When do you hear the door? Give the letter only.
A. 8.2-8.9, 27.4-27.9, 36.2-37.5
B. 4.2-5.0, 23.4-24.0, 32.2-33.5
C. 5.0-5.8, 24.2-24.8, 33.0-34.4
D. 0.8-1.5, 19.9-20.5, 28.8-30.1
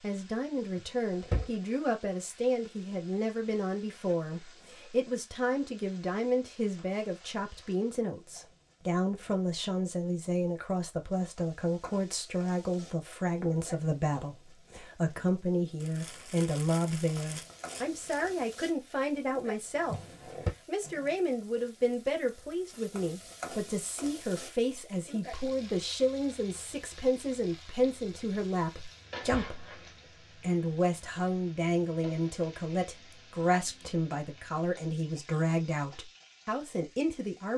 D.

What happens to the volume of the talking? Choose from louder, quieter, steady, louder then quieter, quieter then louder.
steady.